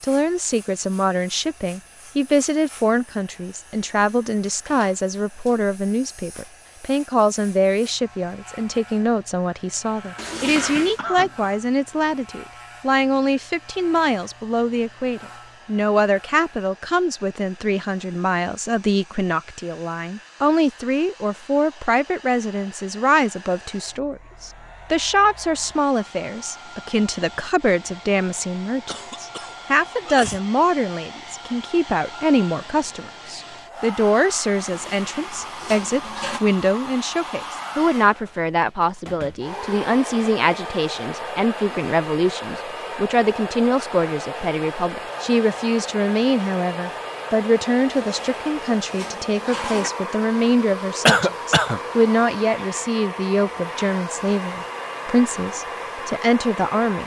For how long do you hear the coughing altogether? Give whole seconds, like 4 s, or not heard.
4 s.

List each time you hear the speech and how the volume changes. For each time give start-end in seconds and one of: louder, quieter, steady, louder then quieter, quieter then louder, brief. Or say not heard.
0.0-57.0 steady.